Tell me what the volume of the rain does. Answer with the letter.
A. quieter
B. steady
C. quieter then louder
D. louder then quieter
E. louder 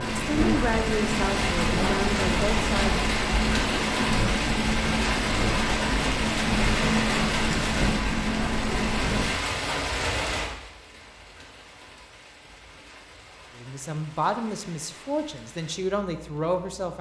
A.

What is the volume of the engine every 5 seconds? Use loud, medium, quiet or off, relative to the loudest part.
loud, loud, off, off.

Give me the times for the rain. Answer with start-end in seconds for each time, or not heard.
0.0-16.9.